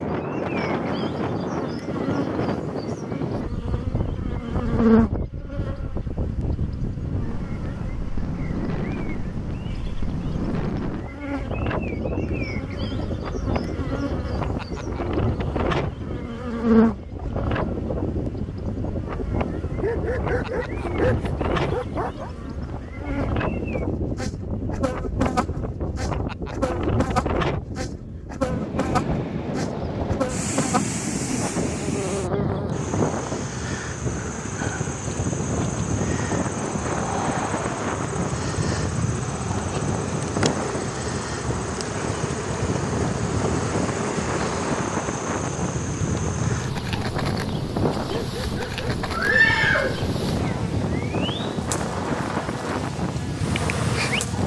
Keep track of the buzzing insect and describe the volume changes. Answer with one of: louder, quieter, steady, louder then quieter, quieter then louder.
steady.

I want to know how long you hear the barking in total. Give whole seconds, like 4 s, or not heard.
4 s.